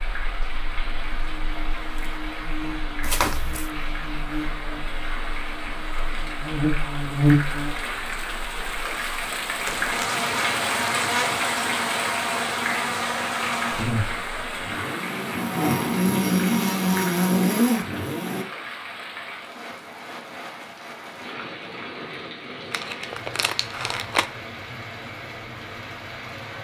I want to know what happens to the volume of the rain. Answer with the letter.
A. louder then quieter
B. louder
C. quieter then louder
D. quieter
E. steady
A.